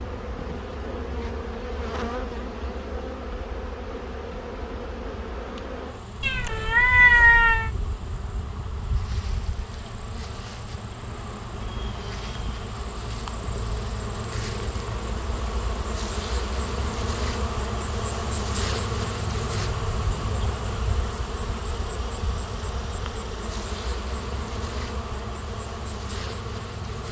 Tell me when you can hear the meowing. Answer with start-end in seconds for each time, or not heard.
6.2-7.7.